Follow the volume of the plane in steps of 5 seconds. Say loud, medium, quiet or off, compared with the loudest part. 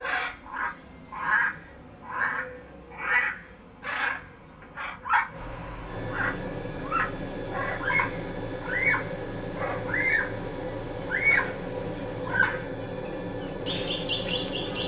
quiet, loud, loud.